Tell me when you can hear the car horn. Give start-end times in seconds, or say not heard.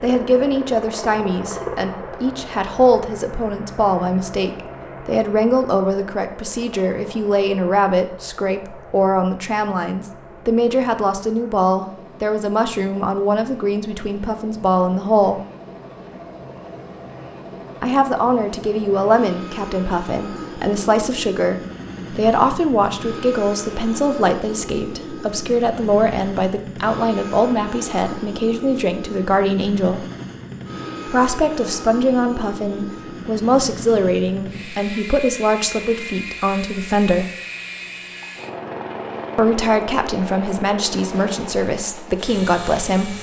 not heard.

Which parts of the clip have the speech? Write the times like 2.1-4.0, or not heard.
0.0-15.4, 17.8-30.1, 31.1-37.3, 39.4-43.1.